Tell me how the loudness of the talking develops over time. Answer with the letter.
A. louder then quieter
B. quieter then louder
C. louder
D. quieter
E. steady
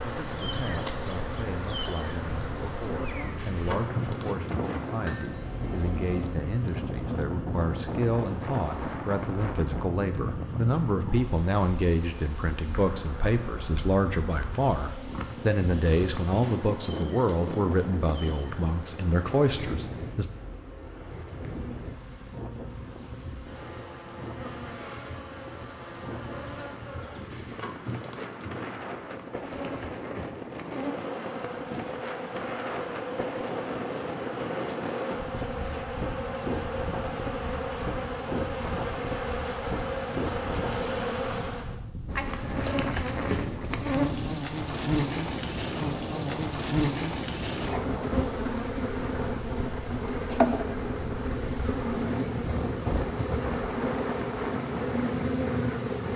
C.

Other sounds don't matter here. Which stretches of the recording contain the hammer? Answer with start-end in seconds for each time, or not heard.
4.8-6.3.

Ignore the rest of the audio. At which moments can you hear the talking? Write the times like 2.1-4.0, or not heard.
0.0-20.2.